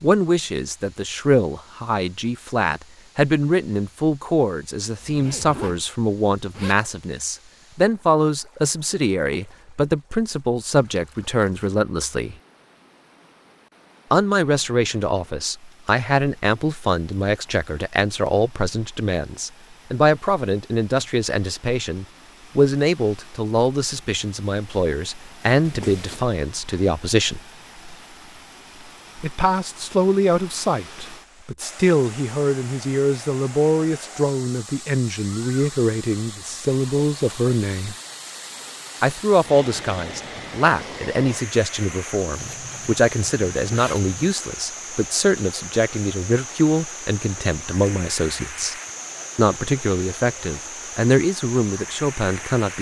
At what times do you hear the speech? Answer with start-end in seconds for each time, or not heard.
0.0-12.3, 14.1-27.4, 29.2-38.0, 39.0-48.8, 49.4-52.7.